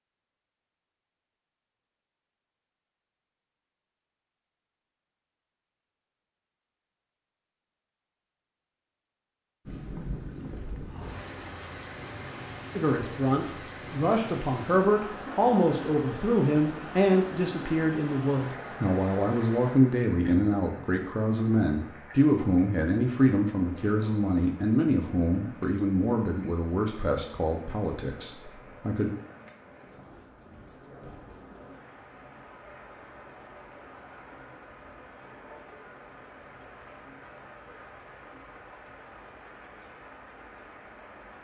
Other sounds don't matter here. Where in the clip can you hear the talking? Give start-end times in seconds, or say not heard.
12.8-29.1.